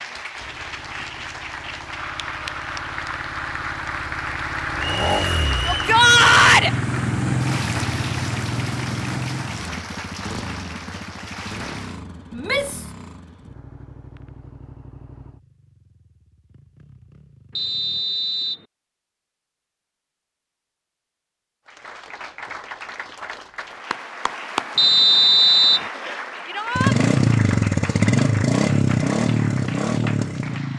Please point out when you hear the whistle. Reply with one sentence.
You can hear the whistle from 5.0 to 5.8 s, from 17.6 to 18.6 s and from 24.8 to 25.9 s.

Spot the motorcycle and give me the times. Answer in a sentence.
You can hear the motorcycle from 0.2 to 18.1 s and from 26.8 to 30.7 s.